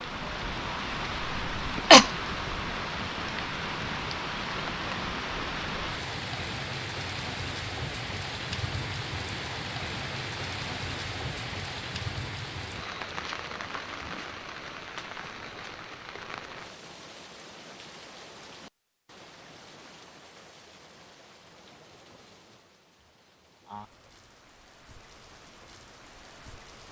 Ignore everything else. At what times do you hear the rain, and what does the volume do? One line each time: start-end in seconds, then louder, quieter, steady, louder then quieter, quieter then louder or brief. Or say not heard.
0.0-26.8 quieter.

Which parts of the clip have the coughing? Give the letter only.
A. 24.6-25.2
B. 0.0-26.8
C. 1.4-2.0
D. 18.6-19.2
C.